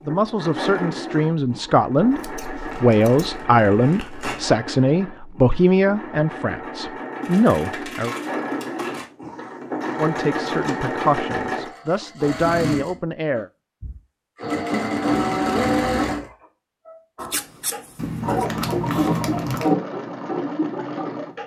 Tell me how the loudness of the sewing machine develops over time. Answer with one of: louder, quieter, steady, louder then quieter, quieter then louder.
louder.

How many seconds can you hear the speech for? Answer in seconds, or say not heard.
12 s.